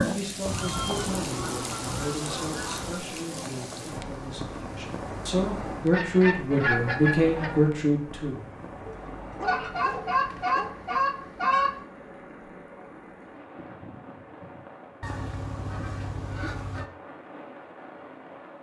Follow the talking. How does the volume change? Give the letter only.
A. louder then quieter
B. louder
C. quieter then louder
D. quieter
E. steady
C.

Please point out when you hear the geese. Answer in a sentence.
You can hear the geese from 0.5 to 3.0 s, from 5.9 to 7.5 s, from 9.4 to 11.8 s and from 15.0 to 16.9 s.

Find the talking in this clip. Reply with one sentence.
You can hear the talking from 0.0 to 8.5 s.